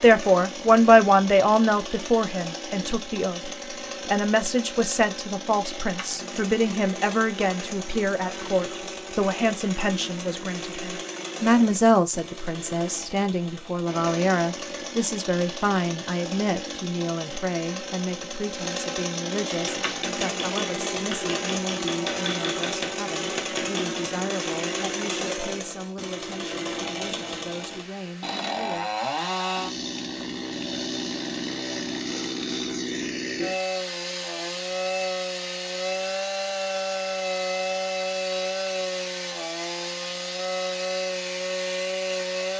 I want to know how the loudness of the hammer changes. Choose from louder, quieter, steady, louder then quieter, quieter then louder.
steady.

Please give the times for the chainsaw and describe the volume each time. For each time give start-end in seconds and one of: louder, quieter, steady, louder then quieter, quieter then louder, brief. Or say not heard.
0.0-42.5 louder.